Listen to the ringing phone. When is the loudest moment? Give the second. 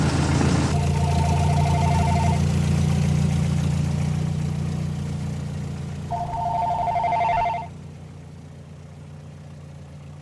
7 s.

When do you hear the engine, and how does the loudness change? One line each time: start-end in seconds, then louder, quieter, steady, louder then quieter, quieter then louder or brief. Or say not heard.
0.0-10.1 quieter.